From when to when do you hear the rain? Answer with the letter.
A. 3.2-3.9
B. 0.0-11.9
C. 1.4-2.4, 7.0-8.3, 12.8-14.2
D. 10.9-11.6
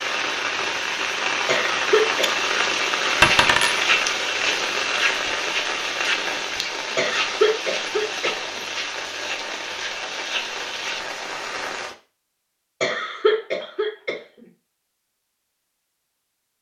B.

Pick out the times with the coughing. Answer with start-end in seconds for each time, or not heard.
1.4-2.4, 7.0-8.3, 12.8-14.2.